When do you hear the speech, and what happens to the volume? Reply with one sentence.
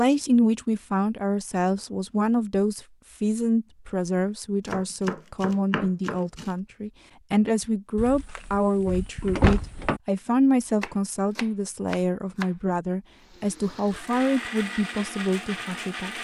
You can hear the speech from 0.0 to 16.1 s, at a steady volume.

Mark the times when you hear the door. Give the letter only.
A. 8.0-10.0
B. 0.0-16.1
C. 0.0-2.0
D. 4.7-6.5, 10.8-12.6
A.